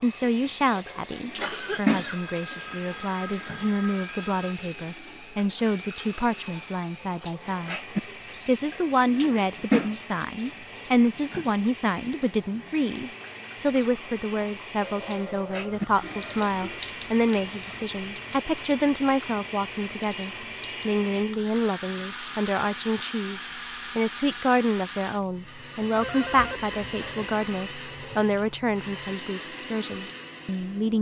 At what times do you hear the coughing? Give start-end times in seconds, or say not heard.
1.2-2.8.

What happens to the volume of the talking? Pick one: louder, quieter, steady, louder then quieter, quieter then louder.
steady.